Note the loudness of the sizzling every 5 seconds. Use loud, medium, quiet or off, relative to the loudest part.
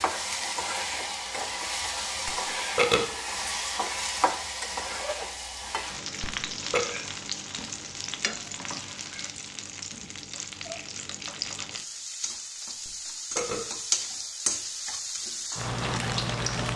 loud, medium, loud, loud.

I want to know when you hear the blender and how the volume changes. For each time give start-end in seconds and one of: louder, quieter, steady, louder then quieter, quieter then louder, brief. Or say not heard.
not heard.